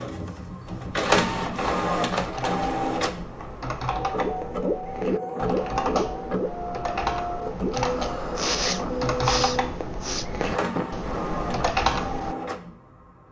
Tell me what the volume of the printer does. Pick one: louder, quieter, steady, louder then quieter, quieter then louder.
quieter.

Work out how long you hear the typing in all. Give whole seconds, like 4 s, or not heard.
12 s.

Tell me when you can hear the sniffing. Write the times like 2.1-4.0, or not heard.
8.3-10.9.